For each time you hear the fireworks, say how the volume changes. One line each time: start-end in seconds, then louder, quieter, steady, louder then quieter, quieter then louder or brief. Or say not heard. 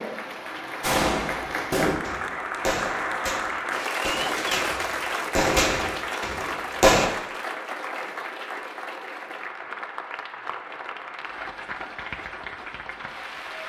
0.8-7.1 quieter then louder.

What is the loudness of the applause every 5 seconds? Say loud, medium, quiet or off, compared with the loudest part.
loud, loud, medium.